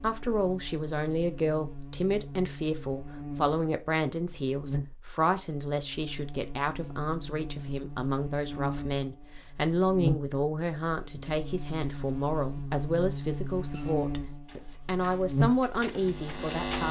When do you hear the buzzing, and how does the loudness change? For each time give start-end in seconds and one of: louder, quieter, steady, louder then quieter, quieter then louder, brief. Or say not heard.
0.0-16.8 louder.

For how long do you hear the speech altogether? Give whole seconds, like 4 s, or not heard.
17 s.